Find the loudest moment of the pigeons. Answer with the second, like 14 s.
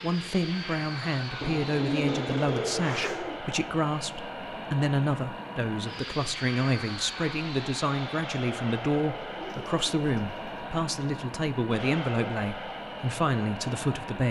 2 s.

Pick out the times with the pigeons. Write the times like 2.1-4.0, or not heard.
1.4-3.4, 9.1-10.7.